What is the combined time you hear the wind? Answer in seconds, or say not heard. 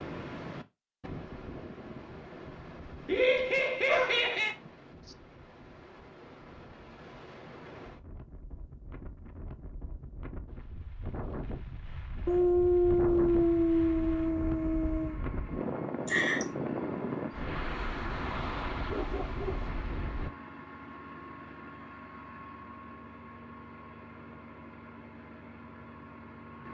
20 s.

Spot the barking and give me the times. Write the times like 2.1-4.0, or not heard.
3.5-4.2, 12.2-15.2, 18.9-19.6.